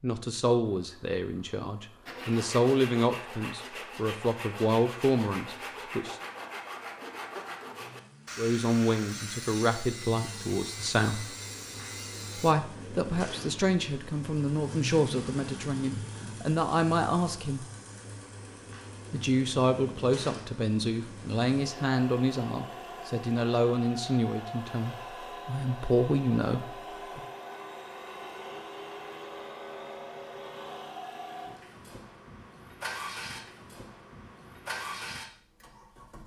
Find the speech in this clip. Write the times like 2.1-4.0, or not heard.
0.0-6.2, 8.3-11.3, 12.3-17.6, 19.1-27.2.